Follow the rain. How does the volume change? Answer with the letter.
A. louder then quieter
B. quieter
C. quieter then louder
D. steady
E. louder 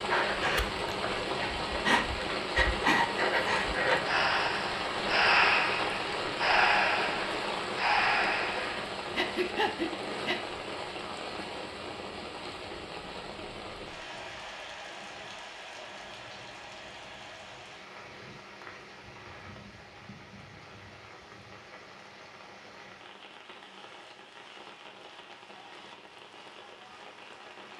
B.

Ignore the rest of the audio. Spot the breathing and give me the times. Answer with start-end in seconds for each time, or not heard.
0.1-10.4.